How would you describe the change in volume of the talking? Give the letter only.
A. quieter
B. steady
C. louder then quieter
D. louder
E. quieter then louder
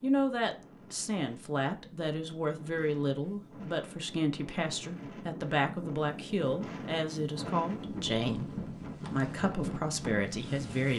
B.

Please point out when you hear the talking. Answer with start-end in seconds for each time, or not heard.
0.0-10.9.